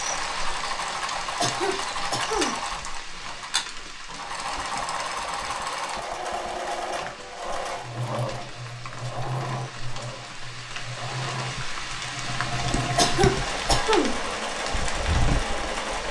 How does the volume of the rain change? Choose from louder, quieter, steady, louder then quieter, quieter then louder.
quieter then louder.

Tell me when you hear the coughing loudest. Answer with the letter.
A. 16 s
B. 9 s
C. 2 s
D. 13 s
D.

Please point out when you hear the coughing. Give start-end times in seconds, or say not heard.
1.4-2.5, 12.9-14.2.